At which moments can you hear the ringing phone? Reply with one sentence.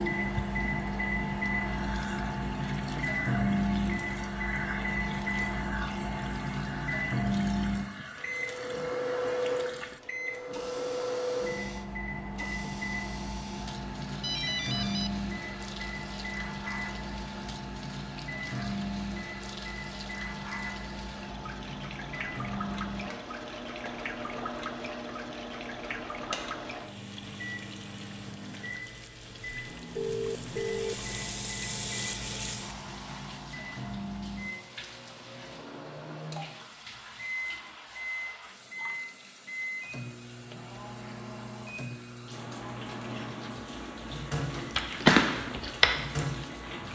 The ringing phone can be heard from 14.2 to 15.1 s and from 29.9 to 31.1 s.